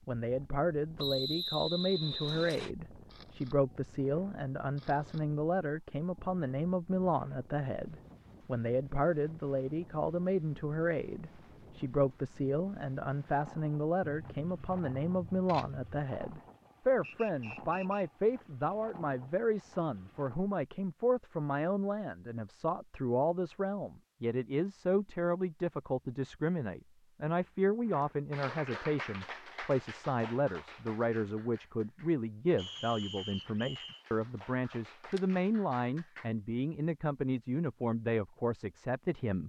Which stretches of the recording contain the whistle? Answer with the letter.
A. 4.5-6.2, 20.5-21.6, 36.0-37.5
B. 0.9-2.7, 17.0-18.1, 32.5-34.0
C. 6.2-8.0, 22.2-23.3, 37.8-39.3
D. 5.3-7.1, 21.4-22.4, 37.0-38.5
B.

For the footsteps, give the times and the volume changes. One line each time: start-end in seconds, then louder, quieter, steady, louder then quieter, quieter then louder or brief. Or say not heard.
not heard.